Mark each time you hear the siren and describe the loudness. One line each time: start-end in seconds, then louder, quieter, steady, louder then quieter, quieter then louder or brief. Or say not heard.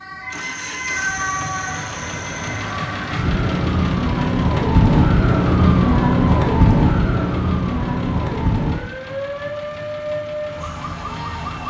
0.0-11.6 louder then quieter.